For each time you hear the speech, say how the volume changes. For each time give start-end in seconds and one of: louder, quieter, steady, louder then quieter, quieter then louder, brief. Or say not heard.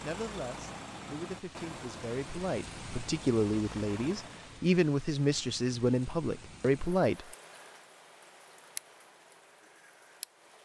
0.0-7.3 louder.